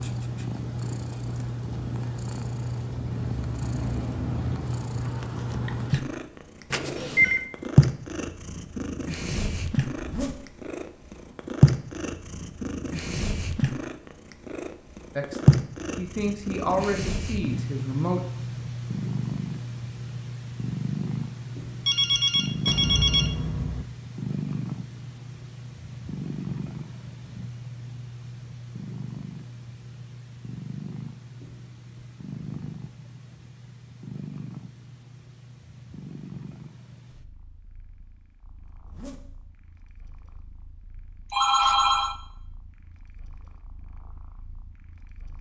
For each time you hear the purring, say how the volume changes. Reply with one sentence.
You can hear the purring from 0.0 to 45.3 s, getting quieter.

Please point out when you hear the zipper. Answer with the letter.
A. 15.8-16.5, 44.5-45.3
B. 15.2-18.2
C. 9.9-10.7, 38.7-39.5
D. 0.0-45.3
C.